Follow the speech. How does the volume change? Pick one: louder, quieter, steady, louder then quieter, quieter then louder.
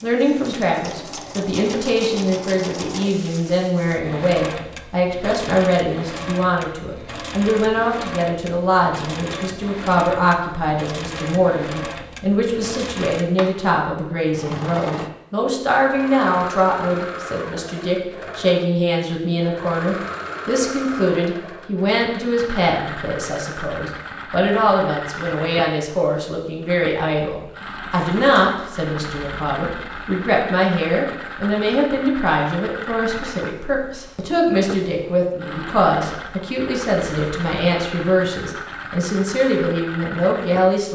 steady.